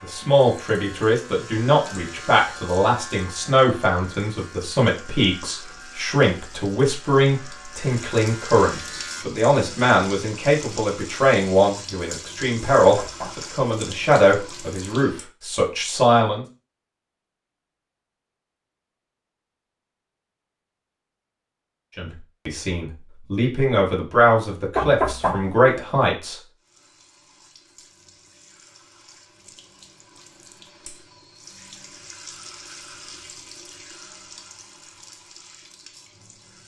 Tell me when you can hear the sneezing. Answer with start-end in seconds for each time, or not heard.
not heard.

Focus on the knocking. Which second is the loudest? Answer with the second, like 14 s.
25 s.